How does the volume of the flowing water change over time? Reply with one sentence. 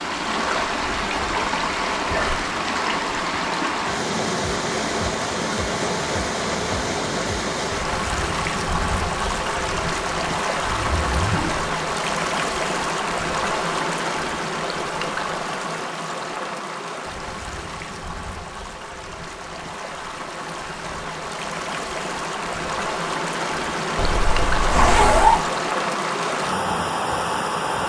The volume of the flowing water goes down, then up.